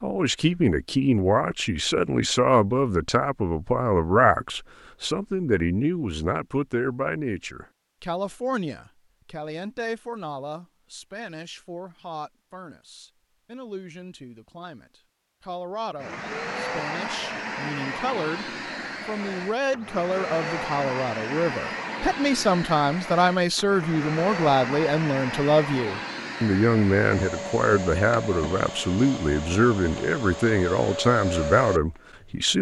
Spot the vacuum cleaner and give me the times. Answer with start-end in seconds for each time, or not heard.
15.9-32.4.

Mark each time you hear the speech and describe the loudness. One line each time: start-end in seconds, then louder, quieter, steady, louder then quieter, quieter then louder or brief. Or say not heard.
0.0-32.5 quieter then louder.